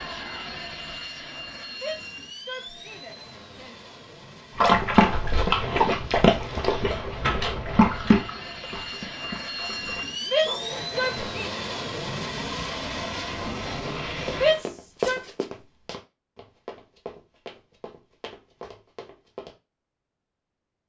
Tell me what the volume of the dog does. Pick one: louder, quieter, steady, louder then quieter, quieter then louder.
quieter.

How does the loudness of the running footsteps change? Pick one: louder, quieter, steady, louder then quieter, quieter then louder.
quieter.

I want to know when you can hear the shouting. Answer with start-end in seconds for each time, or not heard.
1.8-3.8, 10.3-11.5, 14.4-15.2.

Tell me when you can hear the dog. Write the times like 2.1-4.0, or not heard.
4.5-11.1.